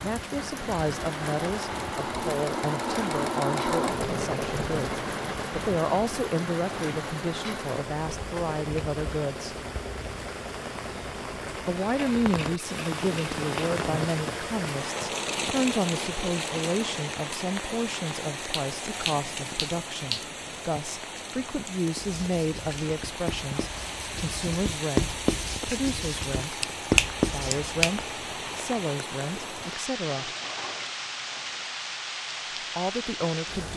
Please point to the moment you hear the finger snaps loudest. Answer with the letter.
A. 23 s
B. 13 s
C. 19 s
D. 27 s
D.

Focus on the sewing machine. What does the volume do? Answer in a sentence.
The loudness of the sewing machine goes down.